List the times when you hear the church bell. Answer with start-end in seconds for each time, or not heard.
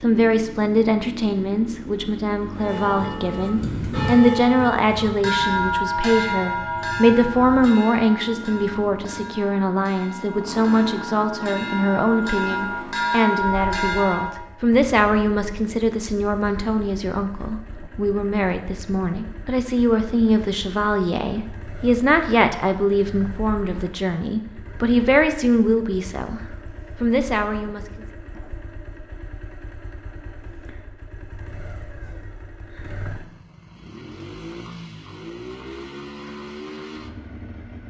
2.5-14.4.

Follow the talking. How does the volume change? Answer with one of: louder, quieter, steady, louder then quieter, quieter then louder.
steady.